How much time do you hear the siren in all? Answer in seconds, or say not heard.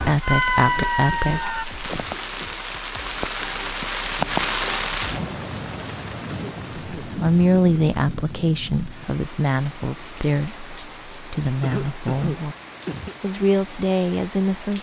2 s.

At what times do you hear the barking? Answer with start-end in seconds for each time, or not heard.
not heard.